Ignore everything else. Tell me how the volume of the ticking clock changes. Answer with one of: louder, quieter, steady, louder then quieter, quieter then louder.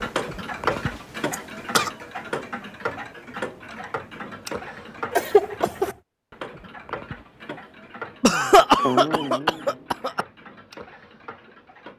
quieter.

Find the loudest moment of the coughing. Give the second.
9 s.